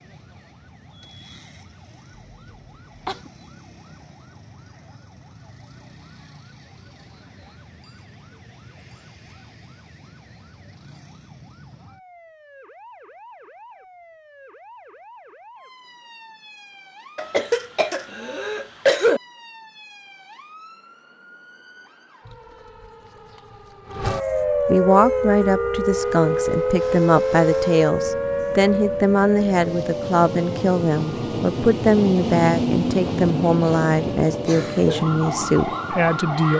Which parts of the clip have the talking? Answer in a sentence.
The talking can be heard from 24.6 to 36.5 s.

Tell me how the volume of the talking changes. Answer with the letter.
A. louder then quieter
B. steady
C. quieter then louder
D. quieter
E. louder
B.